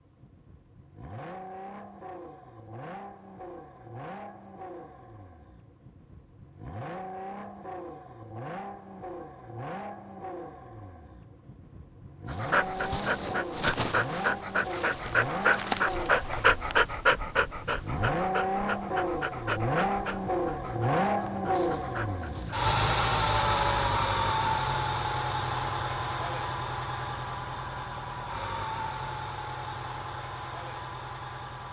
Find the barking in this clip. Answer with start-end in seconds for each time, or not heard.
12.3-22.7.